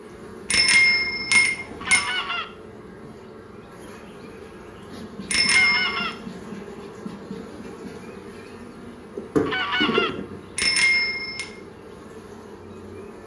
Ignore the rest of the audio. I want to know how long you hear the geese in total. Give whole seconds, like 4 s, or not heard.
2 s.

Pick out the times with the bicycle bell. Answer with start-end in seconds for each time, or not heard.
0.5-2.0, 5.3-6.0, 10.6-11.4.